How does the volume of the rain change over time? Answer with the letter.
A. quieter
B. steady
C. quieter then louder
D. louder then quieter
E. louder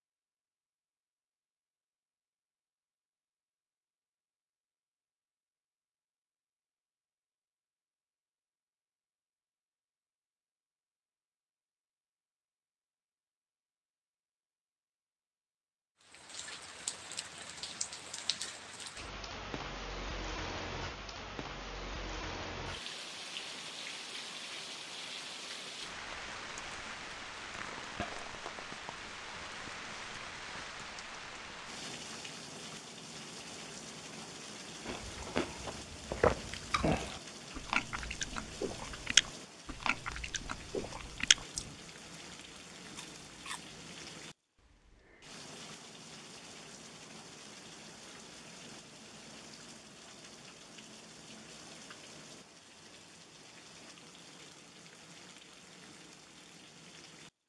A.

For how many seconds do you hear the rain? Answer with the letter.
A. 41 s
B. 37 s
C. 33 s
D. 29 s
A.